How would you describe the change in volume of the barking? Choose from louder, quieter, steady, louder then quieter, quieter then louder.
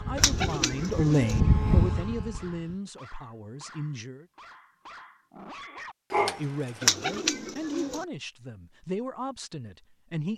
louder.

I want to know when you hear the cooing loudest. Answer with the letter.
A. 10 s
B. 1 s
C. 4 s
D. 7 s
D.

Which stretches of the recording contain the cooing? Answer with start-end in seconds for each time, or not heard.
0.1-1.4, 6.8-8.1.